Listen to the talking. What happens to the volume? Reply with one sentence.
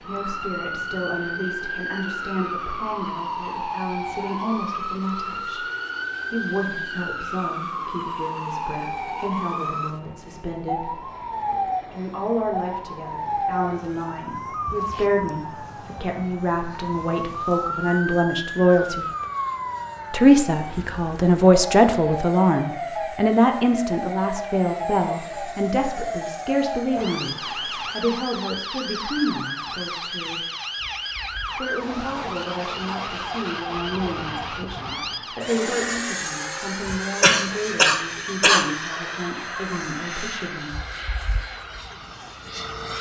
The volume of the talking goes up, then down.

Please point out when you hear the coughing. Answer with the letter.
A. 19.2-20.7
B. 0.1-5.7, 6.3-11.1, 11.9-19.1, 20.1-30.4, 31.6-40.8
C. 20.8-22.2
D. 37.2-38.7
D.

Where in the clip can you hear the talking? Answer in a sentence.
The talking can be heard from 0.1 to 5.7 s, from 6.3 to 11.1 s, from 11.9 to 19.1 s, from 20.1 to 30.4 s and from 31.6 to 40.8 s.